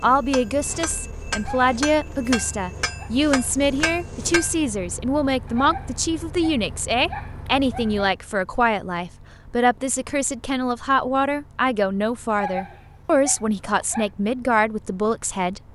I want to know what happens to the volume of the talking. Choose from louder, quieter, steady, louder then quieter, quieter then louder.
steady.